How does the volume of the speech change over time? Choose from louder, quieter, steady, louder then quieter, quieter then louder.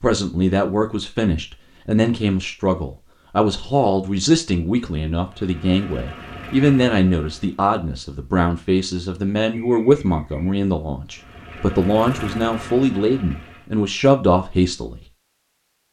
steady.